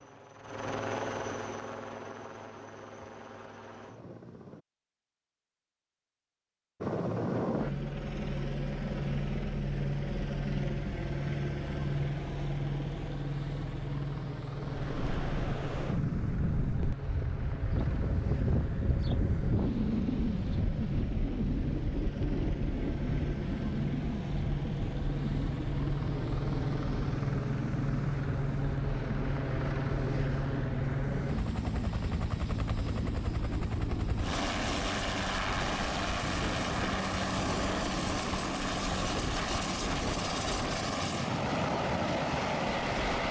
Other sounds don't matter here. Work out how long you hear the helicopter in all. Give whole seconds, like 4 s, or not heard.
41 s.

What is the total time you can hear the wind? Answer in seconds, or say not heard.
29 s.